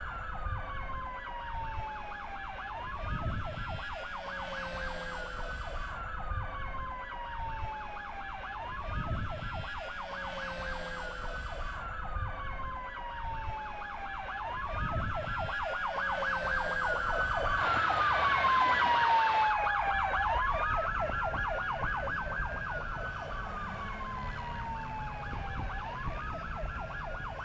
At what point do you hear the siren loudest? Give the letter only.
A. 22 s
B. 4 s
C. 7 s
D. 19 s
D.